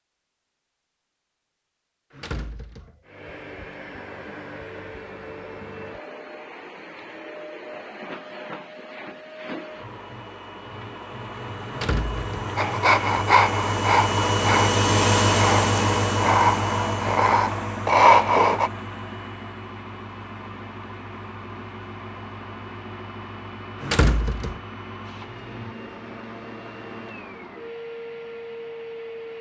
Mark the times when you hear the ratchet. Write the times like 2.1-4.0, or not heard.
not heard.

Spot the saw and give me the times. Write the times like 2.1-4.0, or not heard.
12.6-18.7.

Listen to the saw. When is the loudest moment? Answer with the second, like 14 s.
18 s.